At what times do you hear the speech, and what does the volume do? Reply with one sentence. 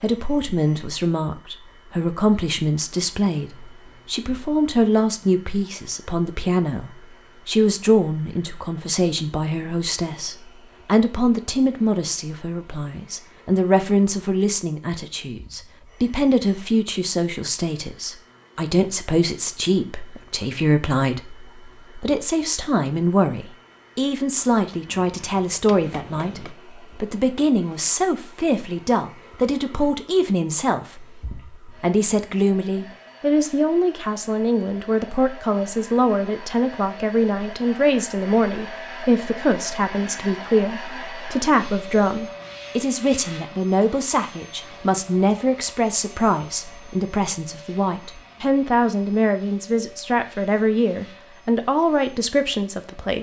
The speech can be heard from 0.0 to 53.1 s, at a steady volume.